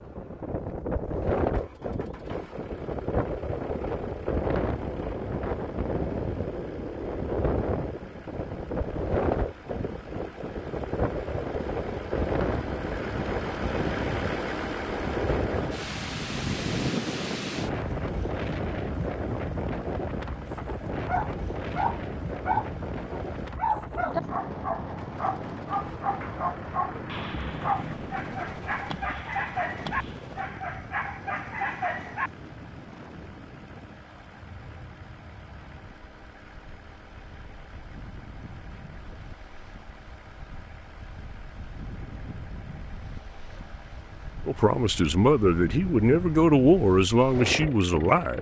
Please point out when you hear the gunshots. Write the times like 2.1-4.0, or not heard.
27.1-30.4.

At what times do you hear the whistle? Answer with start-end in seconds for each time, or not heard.
not heard.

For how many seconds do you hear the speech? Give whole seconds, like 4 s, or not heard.
4 s.